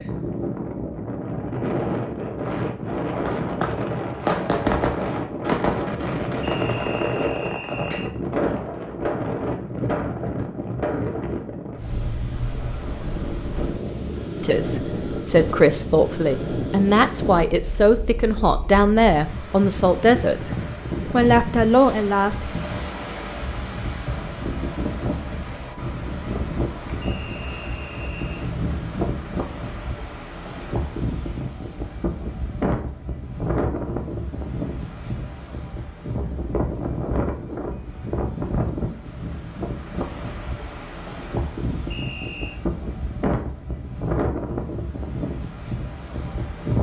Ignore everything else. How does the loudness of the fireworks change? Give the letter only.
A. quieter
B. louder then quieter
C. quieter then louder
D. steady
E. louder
A.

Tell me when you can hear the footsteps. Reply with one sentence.
You can't hear the footsteps here.